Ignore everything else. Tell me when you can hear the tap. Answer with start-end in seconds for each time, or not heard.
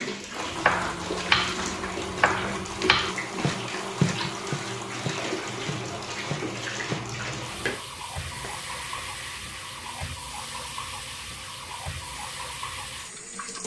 0.0-13.6.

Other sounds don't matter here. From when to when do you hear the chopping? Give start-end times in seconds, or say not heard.
0.5-9.1.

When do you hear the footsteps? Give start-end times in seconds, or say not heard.
not heard.